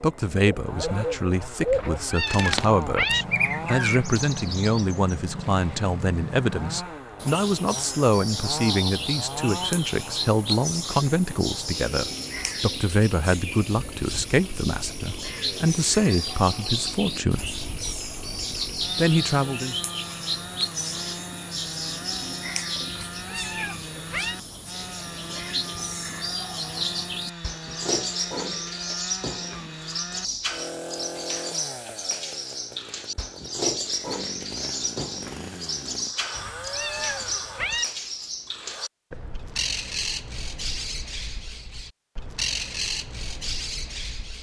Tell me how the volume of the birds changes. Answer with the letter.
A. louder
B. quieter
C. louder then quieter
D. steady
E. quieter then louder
D.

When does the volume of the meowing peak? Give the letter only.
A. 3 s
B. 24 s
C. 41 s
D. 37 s
A.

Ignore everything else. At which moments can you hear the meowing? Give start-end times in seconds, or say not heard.
1.7-3.2, 22.9-24.4, 36.4-37.9.